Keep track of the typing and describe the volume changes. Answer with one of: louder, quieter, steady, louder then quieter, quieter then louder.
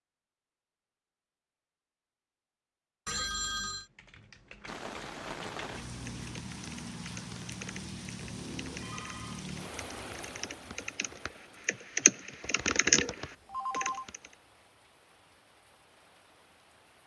louder.